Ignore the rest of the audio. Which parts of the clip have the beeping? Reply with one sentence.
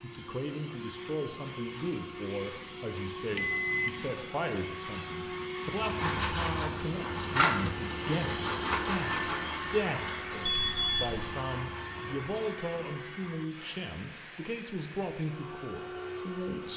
You can hear the beeping from 3.4 to 4.0 s and from 10.4 to 11.3 s.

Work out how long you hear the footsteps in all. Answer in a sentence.
You can't hear the footsteps here.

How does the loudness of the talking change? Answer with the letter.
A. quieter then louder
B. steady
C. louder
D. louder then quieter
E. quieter
B.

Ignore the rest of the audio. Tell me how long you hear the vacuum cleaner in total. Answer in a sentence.
The vacuum cleaner can be heard for 17 seconds in total.